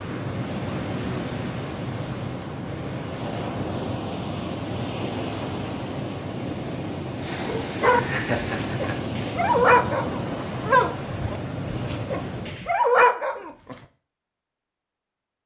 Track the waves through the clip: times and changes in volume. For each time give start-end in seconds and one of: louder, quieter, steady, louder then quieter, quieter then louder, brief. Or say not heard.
0.0-12.7 steady.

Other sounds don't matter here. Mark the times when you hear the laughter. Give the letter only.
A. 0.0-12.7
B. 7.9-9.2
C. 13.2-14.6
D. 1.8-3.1
B.